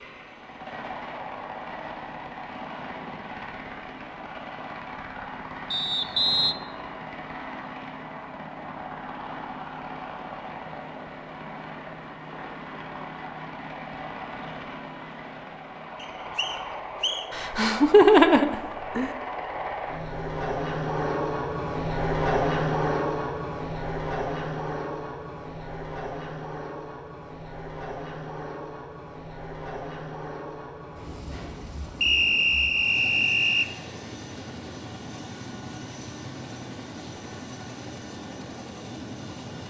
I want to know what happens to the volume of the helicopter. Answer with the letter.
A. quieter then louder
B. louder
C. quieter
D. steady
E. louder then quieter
E.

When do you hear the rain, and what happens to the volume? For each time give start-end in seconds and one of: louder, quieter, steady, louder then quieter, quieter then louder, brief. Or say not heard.
not heard.